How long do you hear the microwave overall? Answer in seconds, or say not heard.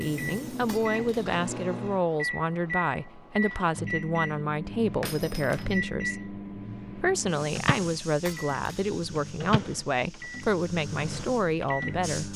12 s.